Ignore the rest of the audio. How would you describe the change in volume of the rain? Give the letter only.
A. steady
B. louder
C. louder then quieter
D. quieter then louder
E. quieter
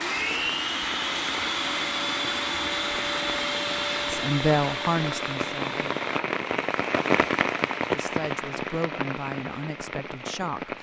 C.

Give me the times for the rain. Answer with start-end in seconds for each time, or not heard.
0.1-10.7.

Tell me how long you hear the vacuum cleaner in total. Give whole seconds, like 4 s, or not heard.
6 s.